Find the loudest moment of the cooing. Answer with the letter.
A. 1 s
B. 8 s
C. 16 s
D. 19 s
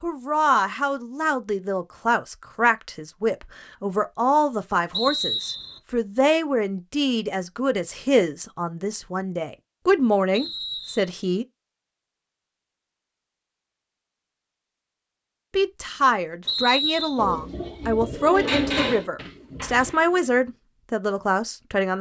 D.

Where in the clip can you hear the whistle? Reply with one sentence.
The whistle can be heard from 4.9 to 5.8 s, from 10.3 to 11.1 s and from 16.4 to 17.2 s.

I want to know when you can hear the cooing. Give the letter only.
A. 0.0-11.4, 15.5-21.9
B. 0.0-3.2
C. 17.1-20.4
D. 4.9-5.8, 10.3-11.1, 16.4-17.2
C.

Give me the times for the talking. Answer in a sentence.
You can hear the talking from 0.0 to 11.4 s and from 15.5 to 21.9 s.